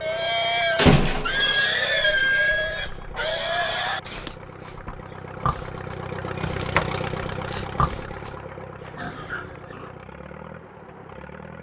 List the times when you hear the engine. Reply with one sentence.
You can hear the engine from 0.0 to 11.5 s.